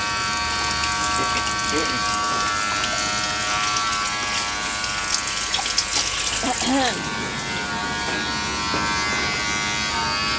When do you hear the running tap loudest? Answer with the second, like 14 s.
6 s.